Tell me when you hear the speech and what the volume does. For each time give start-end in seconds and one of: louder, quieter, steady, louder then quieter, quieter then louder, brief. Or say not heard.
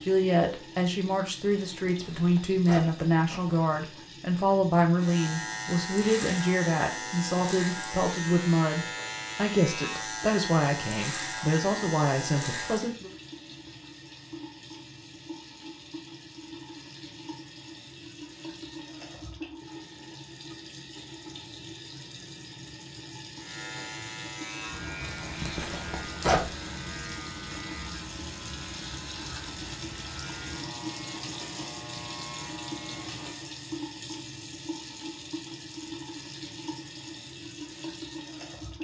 0.0-13.1 steady.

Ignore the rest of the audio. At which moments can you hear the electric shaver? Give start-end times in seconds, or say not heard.
5.0-12.9, 23.4-33.5.